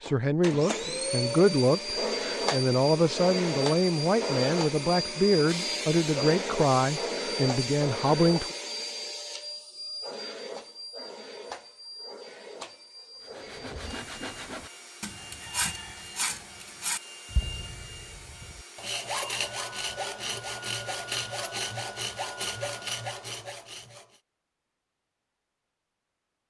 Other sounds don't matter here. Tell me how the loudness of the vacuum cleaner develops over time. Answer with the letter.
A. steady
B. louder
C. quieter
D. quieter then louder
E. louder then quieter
C.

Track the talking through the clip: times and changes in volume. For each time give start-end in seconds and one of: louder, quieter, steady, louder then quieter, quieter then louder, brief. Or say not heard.
0.0-8.6 steady.